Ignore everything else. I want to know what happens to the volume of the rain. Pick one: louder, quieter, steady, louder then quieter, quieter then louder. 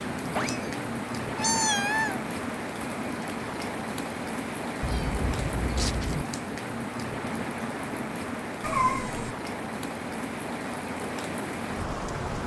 steady.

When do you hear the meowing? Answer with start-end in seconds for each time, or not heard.
0.3-2.2, 4.8-6.2, 8.6-9.3.